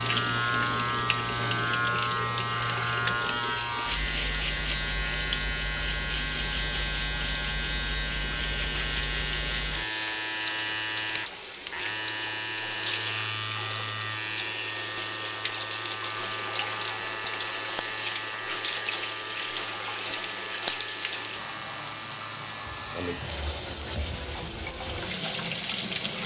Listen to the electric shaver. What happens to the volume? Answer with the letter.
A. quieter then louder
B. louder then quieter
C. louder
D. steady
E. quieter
E.